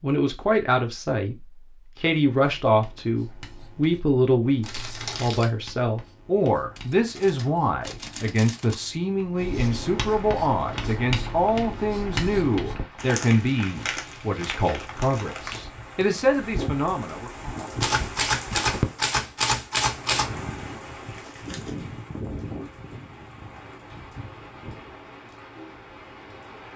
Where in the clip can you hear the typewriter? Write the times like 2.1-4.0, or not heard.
6.8-8.8, 17.8-20.3.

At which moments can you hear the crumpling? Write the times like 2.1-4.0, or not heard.
4.6-5.7, 12.9-15.7, 21.1-21.8.